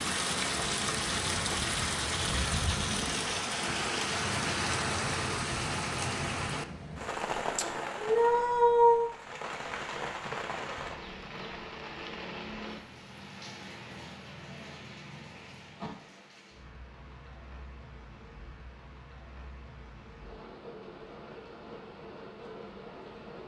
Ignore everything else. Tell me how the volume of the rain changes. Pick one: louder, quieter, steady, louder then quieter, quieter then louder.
quieter.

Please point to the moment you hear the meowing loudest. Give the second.
9 s.